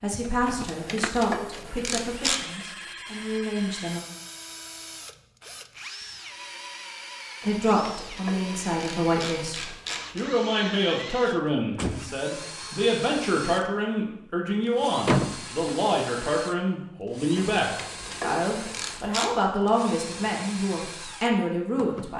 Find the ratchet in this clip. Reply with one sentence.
The ratchet can be heard from 0.5 to 2.5 s, from 7.4 to 10.2 s and from 17.4 to 19.4 s.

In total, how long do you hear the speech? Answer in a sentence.
You can hear the speech for 19 seconds altogether.